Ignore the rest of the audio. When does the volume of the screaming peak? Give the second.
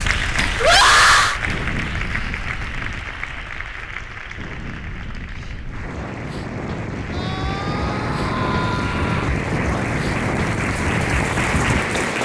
1 s.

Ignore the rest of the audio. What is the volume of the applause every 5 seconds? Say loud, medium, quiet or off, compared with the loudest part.
loud, medium, loud.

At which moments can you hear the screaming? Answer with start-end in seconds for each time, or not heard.
0.6-1.4, 7.1-9.3.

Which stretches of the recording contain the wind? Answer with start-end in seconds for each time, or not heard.
0.0-12.2.